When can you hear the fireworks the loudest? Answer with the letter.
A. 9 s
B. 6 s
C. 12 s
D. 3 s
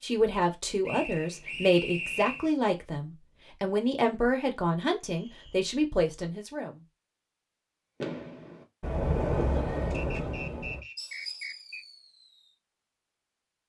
A.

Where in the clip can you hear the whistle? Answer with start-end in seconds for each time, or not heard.
0.8-2.5, 5.1-5.8, 9.9-11.8.